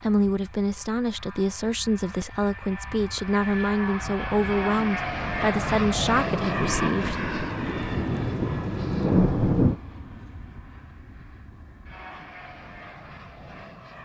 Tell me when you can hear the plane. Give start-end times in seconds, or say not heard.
0.0-14.0.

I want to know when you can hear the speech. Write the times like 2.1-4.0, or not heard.
0.0-7.2.